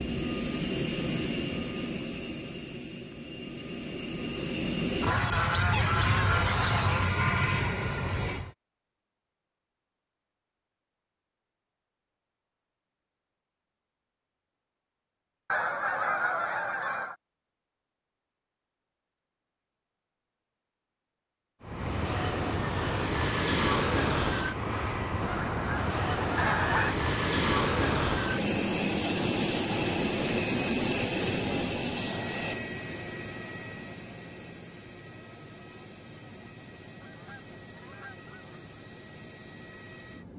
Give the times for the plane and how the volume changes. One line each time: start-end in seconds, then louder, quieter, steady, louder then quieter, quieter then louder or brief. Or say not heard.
0.0-8.5 quieter then louder
21.6-40.3 quieter.